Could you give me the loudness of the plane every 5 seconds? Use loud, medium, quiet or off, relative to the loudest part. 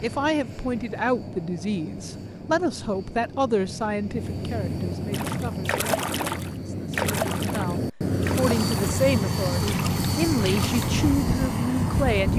medium, loud, loud.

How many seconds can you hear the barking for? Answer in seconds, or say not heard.
not heard.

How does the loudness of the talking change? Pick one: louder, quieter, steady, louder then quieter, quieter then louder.
quieter then louder.